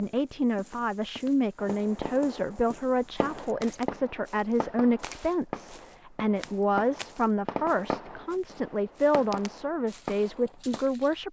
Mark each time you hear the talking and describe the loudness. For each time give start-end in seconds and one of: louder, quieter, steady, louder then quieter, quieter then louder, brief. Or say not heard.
0.0-11.2 steady.